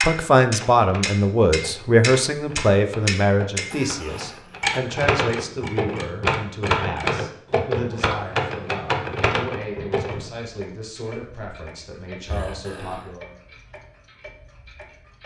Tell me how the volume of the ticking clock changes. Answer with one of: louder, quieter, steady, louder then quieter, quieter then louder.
quieter.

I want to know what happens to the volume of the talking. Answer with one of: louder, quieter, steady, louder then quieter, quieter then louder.
quieter.